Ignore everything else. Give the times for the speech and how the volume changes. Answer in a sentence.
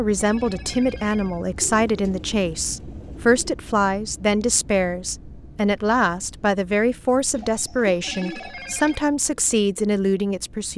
You can hear the speech from 0.0 to 10.7 s, at a steady volume.